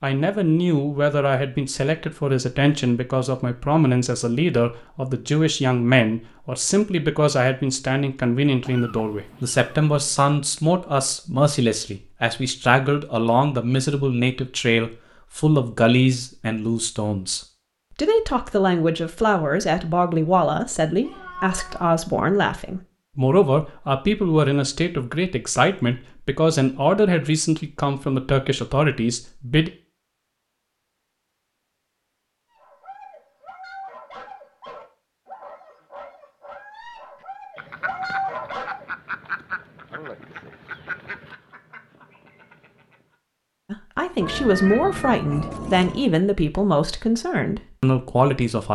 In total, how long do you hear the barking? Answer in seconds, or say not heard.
6 s.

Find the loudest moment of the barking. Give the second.
38 s.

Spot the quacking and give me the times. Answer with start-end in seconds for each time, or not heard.
37.5-43.1.